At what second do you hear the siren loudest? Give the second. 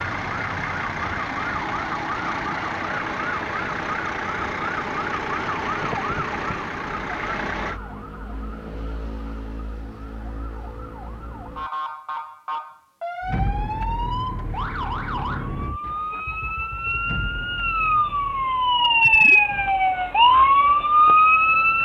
21 s.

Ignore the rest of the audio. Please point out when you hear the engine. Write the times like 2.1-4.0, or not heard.
0.0-7.8, 13.2-21.8.